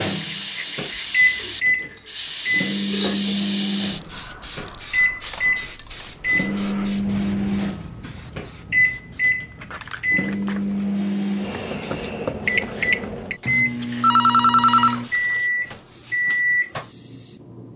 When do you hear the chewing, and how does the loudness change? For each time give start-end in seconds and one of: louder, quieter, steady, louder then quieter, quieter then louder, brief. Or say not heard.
not heard.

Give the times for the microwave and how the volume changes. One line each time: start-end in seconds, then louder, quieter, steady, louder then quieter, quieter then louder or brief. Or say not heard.
0.0-17.7 steady.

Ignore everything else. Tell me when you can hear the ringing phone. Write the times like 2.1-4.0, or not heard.
14.0-15.4.